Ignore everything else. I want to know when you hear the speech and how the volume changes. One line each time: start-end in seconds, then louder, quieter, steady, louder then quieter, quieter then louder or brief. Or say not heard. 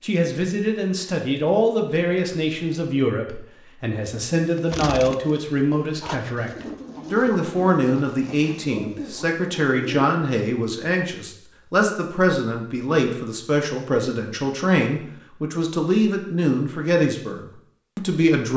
0.0-18.5 steady.